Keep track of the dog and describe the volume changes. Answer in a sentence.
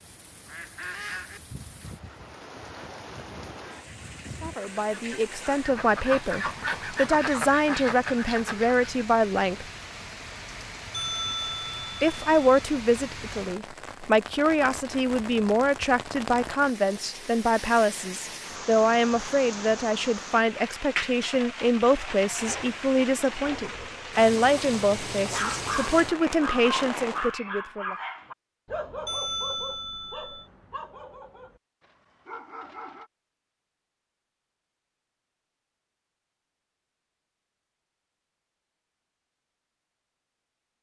The loudness of the dog goes down.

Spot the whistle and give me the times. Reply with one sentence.
The whistle can't be heard in this clip.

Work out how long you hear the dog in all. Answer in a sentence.
You can hear the dog for 8 seconds altogether.